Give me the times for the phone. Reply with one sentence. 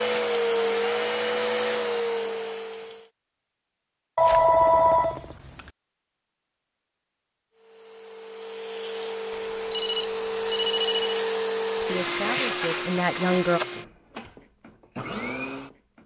The phone can be heard from 4.2 to 5.7 s and from 9.5 to 11.2 s.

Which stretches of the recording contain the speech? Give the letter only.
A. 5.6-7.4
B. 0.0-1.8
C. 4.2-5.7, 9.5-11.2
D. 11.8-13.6
D.